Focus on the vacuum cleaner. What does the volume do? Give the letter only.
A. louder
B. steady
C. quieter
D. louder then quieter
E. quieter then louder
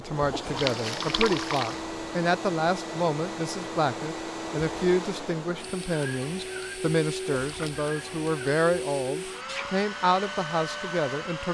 B.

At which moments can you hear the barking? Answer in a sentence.
You can't hear the barking here.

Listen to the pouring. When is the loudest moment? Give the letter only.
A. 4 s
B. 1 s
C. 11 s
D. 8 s
B.